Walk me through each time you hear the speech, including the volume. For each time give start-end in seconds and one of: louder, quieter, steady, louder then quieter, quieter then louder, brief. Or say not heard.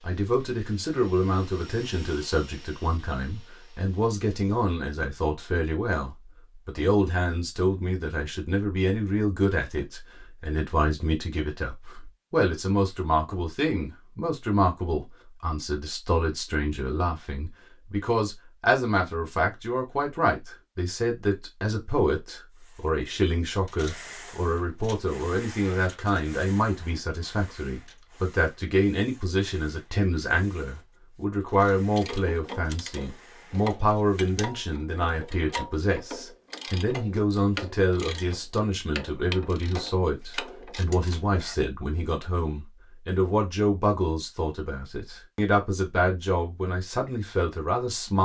0.1-48.1 steady.